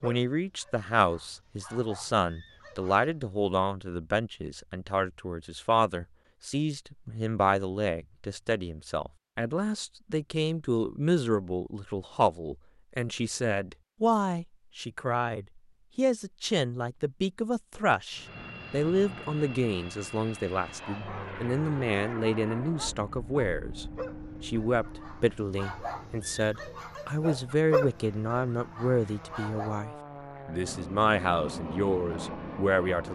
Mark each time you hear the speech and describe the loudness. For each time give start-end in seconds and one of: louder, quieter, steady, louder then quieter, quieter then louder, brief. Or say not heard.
0.0-33.1 steady.